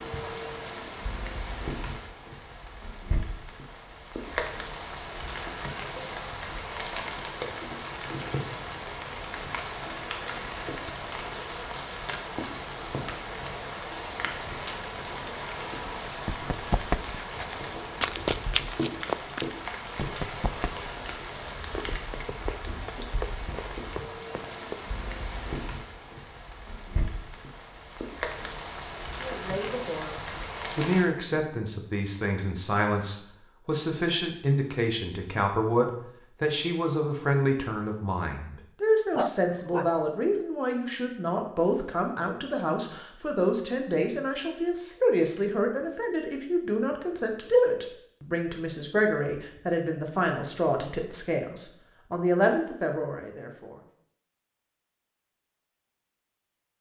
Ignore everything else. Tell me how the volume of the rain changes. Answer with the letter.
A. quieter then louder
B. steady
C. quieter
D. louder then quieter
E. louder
B.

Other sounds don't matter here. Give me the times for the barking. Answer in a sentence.
You can hear the barking from 39.1 to 40.0 s.